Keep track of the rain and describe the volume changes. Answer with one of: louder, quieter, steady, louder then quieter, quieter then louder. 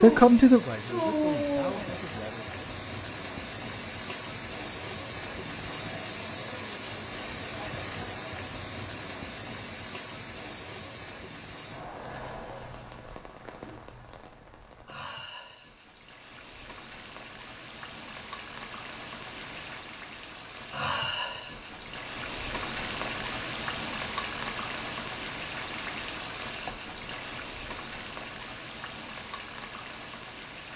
quieter then louder.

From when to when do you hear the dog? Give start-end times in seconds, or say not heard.
0.0-2.0.